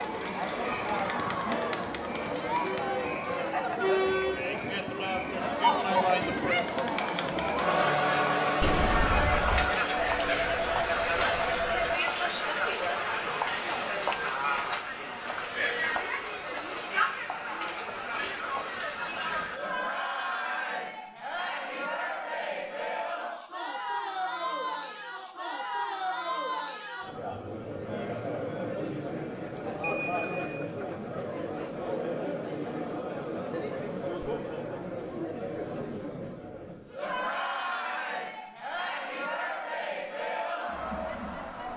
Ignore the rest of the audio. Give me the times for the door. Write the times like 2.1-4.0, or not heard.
8.6-9.7.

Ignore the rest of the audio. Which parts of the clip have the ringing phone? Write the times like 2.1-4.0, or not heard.
9.9-11.9, 19.2-20.8, 29.8-30.6.